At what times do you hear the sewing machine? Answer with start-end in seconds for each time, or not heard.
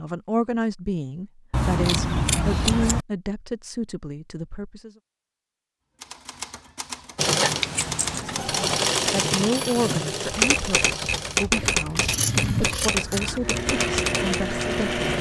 7.2-15.1.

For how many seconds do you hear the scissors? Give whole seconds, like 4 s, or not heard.
4 s.